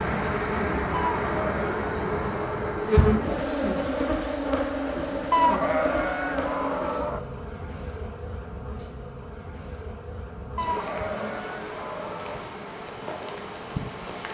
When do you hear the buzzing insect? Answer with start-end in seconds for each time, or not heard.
0.0-14.2.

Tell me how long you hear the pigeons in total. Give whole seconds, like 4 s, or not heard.
not heard.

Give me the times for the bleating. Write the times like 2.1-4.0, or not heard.
0.9-2.6, 5.3-7.2, 10.6-12.4.